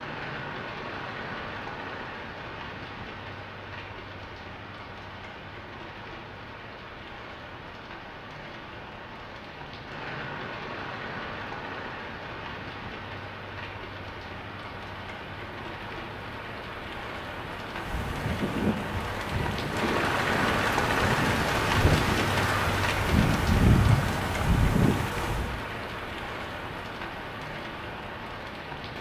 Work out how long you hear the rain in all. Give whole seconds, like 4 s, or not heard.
29 s.